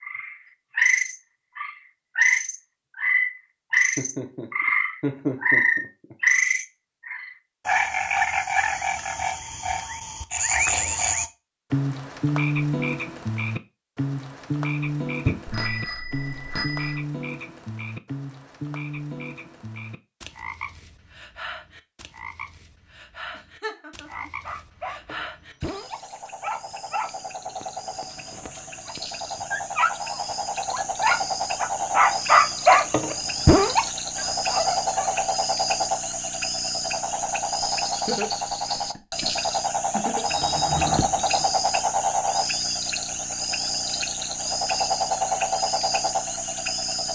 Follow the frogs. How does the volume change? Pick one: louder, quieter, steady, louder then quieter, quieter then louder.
quieter then louder.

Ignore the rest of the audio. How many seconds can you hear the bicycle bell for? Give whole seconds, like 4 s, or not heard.
3 s.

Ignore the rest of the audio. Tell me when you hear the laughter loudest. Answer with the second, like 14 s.
5 s.